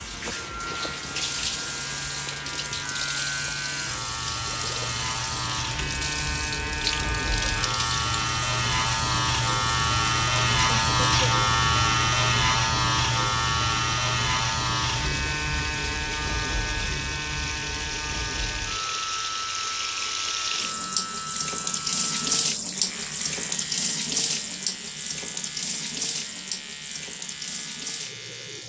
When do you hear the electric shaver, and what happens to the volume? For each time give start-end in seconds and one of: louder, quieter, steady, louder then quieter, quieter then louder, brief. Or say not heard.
0.0-28.6 louder then quieter.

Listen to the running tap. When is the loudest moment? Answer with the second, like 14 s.
22 s.